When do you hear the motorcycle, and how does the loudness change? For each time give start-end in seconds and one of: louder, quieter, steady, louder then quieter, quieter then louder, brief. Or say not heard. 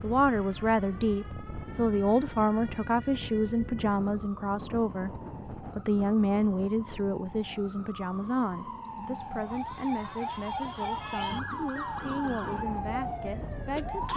not heard.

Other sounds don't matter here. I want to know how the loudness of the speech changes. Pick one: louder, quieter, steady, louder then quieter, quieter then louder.
quieter.